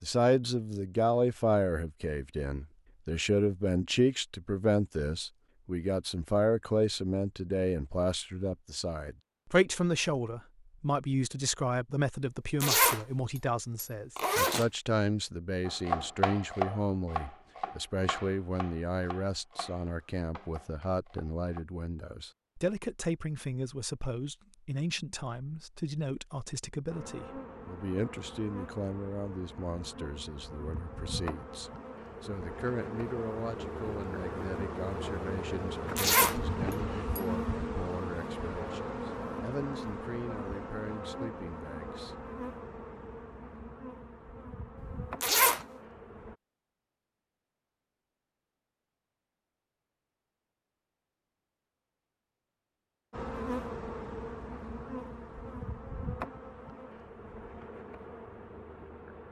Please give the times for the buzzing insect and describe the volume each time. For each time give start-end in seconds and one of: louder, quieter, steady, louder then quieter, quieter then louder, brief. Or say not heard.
26.9-46.4 louder then quieter
53.1-59.2 quieter.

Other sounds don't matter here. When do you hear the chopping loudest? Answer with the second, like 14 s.
16 s.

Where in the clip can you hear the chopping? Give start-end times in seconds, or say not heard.
15.7-21.6.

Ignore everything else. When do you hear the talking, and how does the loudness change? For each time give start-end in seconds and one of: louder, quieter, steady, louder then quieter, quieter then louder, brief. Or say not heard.
0.0-42.1 quieter.